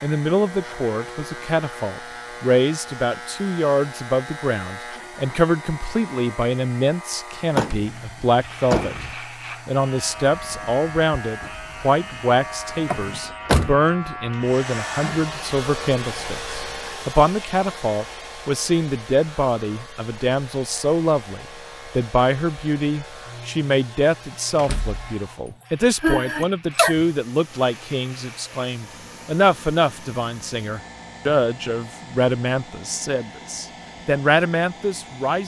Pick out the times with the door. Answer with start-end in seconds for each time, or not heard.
7.5-9.2, 12.9-13.8, 24.6-25.5.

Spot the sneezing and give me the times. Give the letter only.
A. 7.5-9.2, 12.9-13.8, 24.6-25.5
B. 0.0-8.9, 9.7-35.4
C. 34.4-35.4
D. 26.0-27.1
D.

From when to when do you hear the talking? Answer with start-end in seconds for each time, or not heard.
0.0-8.9, 9.7-35.4.